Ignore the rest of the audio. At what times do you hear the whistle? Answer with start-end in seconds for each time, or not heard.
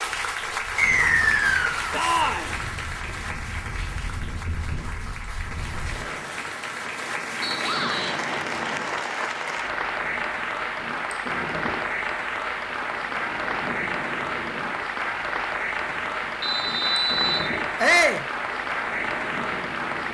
0.8-1.9, 7.4-8.0, 16.4-17.4.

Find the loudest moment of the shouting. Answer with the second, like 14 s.
18 s.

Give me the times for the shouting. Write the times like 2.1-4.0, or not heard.
1.9-2.5, 7.6-8.1, 17.8-18.2.